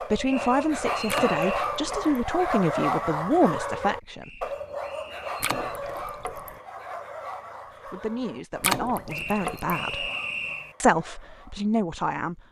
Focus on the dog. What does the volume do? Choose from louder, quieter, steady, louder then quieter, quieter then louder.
quieter.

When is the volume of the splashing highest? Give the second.
9 s.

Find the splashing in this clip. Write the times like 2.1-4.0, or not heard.
1.1-2.2, 5.4-6.5, 8.6-9.8.